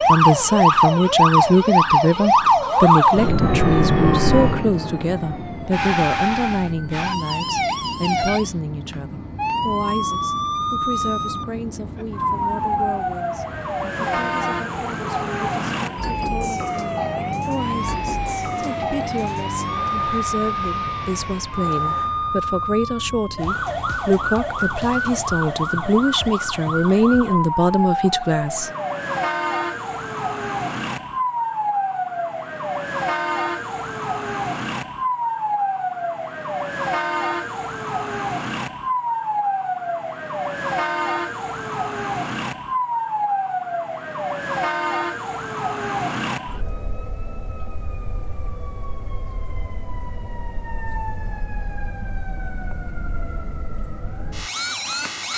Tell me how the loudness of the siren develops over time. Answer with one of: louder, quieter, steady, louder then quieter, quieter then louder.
quieter.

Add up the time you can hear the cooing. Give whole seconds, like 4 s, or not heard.
not heard.